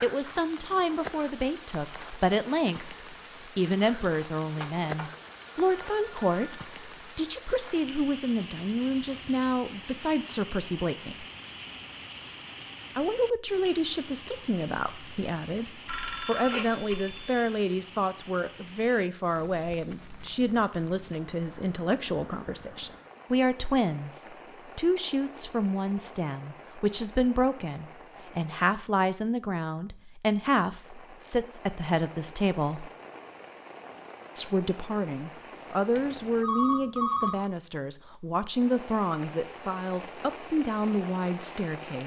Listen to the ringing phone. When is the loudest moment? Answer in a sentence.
The volume of the ringing phone peaks at 37 seconds.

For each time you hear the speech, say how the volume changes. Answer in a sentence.
The speech can be heard from 0.0 to 11.2 s, at a steady volume; from 12.9 to 32.9 s, at a steady volume; and from 34.4 to 42.0 s, at a steady volume.